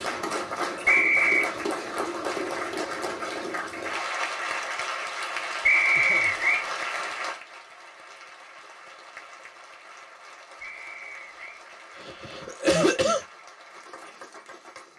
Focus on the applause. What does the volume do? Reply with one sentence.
The volume of the applause goes down.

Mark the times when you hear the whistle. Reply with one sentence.
The whistle can be heard from 0.8 to 1.5 s, from 5.7 to 6.7 s and from 10.6 to 11.6 s.